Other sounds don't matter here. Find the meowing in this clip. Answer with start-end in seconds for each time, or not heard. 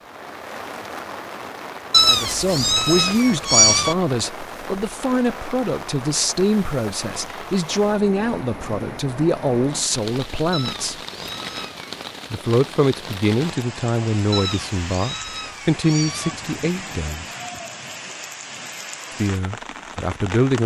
1.9-4.0, 10.5-11.9, 14.3-16.4.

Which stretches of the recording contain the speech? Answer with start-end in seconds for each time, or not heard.
2.0-10.9, 12.3-17.2, 19.2-20.6.